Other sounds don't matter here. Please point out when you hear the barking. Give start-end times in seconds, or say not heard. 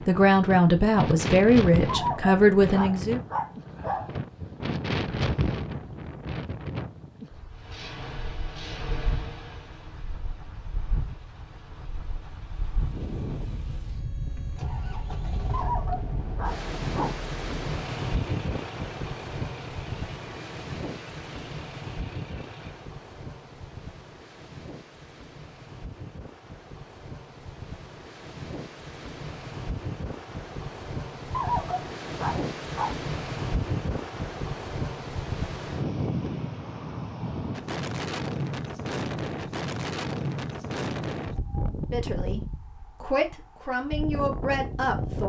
1.9-4.2, 15.5-17.2, 31.3-33.0.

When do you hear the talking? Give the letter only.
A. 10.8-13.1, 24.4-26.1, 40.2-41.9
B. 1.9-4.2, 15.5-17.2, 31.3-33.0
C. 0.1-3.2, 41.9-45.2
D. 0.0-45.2
C.